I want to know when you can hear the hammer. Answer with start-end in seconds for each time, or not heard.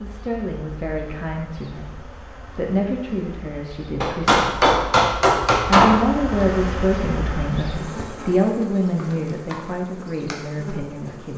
4.0-6.0.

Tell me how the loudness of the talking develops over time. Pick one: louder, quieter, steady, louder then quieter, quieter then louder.
louder then quieter.